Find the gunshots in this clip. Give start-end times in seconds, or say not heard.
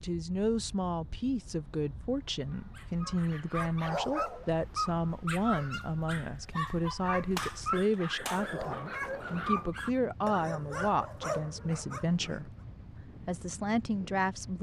7.3-8.5.